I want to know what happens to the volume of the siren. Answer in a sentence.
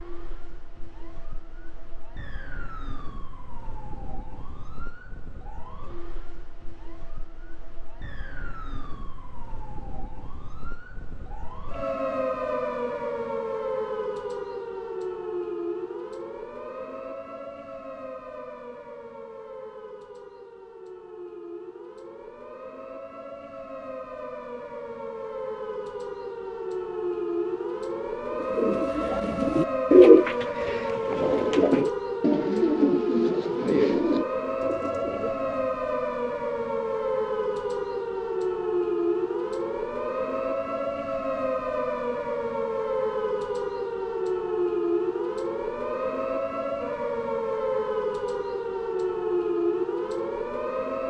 The loudness of the siren goes up.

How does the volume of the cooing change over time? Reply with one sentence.
The volume of the cooing goes down.